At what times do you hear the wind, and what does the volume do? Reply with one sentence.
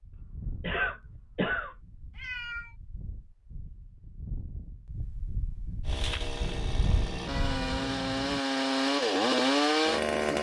You can hear the wind from 0.0 to 7.8 s, getting quieter then louder.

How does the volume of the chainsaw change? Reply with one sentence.
The loudness of the chainsaw goes up.